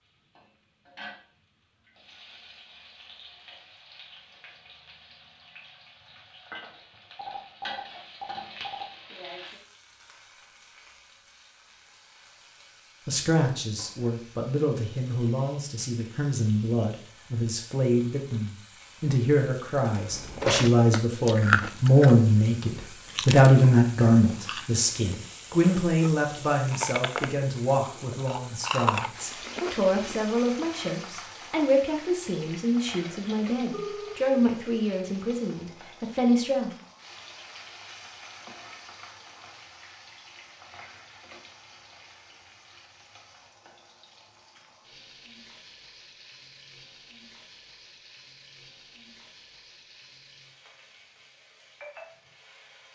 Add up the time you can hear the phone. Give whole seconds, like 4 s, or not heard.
3 s.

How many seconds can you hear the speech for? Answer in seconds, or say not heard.
24 s.